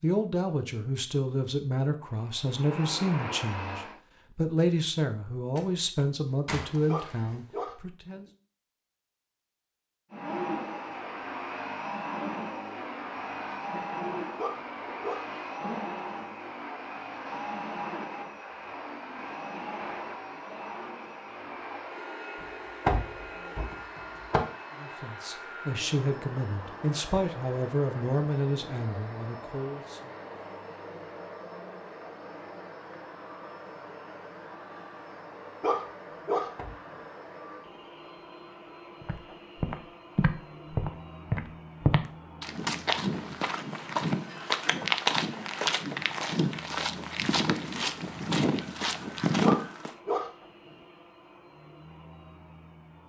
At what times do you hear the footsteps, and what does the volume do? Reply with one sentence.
You can hear the footsteps from 39.0 to 49.9 s, at a steady volume.